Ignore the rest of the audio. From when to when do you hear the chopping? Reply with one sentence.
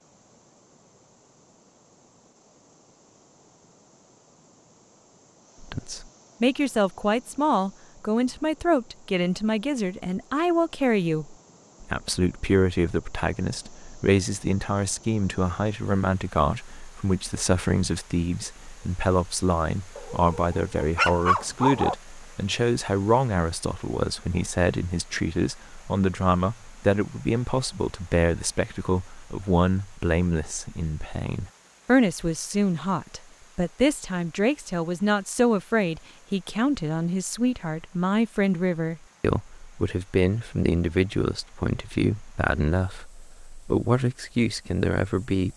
You can't hear the chopping here.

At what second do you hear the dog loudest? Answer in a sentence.
The loudest moment of the dog is at 21 seconds.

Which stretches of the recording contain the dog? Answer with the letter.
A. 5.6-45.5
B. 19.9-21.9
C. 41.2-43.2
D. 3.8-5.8
B.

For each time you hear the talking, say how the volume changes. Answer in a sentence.
The talking can be heard from 5.6 to 45.5 s, at a steady volume.